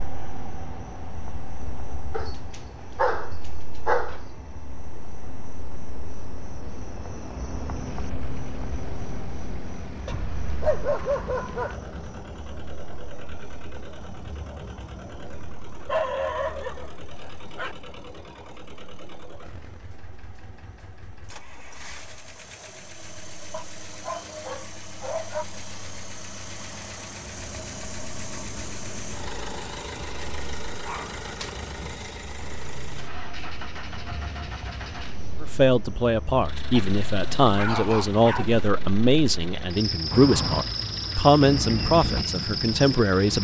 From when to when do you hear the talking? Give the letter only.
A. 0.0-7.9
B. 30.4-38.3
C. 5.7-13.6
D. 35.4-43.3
D.